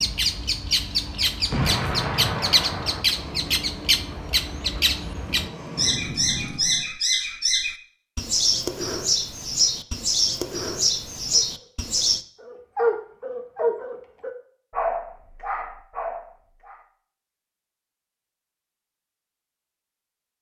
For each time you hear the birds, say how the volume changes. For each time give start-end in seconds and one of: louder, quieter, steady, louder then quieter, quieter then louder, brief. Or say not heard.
0.0-12.2 steady.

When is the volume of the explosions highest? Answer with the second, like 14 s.
2 s.